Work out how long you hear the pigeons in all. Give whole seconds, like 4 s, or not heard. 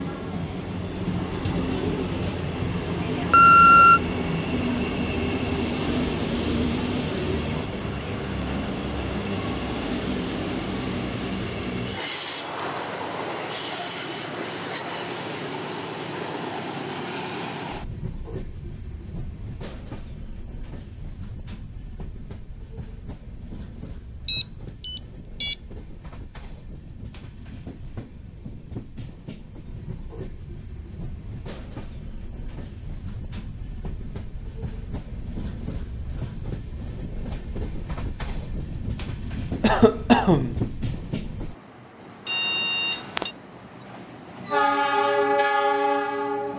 not heard.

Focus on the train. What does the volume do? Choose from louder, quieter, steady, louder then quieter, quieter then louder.
quieter then louder.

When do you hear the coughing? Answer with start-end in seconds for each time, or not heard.
39.6-40.6.